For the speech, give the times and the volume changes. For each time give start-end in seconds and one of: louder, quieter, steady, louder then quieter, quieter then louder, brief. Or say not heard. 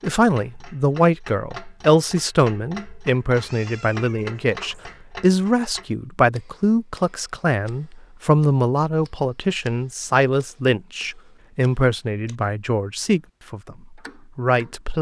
0.0-13.8 steady
14.3-14.9 brief.